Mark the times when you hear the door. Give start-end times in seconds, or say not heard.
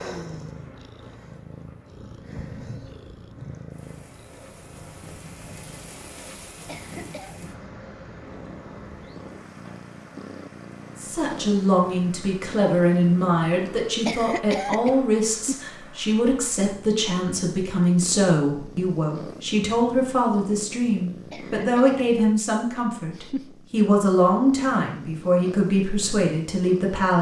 not heard.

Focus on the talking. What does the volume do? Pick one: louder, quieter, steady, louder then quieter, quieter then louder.
steady.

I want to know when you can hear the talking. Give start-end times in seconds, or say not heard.
10.9-27.1.